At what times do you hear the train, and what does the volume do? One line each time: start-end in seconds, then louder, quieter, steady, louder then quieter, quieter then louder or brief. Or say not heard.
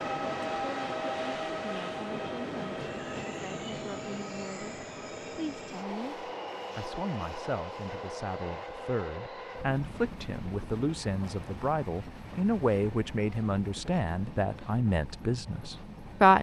0.0-16.3 quieter.